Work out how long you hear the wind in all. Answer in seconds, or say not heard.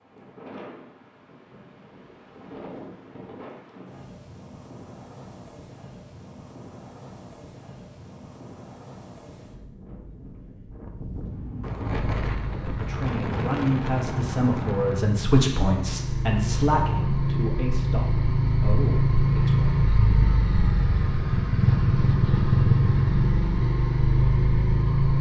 15 s.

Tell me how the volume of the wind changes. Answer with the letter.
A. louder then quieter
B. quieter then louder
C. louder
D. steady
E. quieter
C.